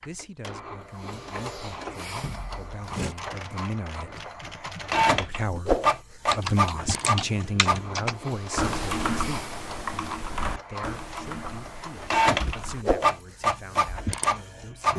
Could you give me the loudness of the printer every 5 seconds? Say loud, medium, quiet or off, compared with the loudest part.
medium, loud, loud.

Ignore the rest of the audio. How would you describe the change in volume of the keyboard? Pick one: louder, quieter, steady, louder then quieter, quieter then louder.
louder then quieter.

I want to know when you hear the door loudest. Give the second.
3 s.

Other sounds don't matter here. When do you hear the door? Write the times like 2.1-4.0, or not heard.
2.2-3.1, 11.9-12.6.